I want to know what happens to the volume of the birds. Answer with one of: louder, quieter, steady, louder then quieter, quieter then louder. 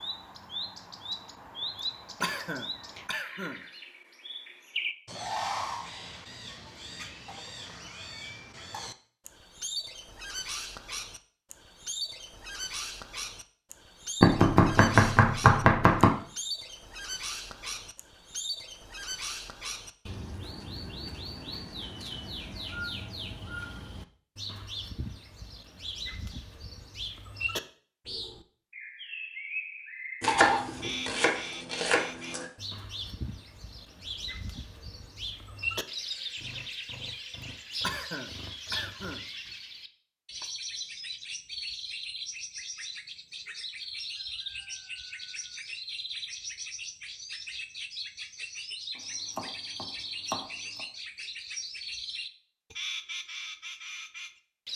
steady.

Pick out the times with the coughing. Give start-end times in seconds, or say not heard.
2.2-3.6, 37.8-39.2.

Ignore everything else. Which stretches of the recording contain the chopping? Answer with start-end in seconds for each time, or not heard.
14.2-16.1, 30.2-32.5, 49.0-50.9.